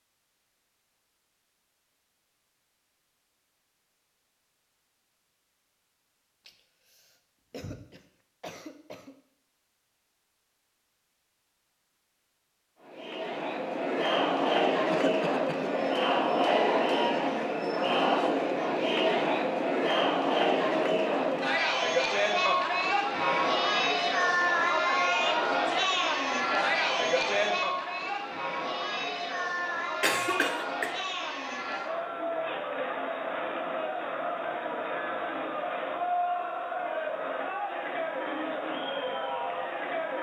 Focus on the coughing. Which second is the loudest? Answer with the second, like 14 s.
30 s.